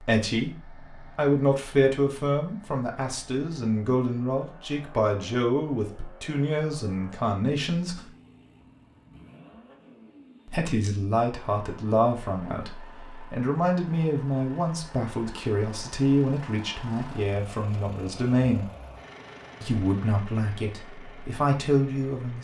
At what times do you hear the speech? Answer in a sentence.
You can hear the speech from 0.0 to 8.0 s, from 10.4 to 18.6 s and from 19.6 to 22.3 s.